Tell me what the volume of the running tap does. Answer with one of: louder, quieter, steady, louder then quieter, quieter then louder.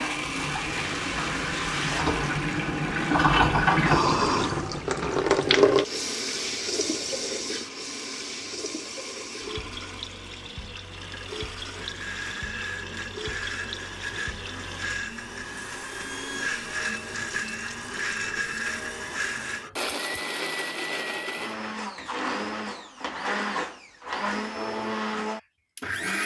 quieter.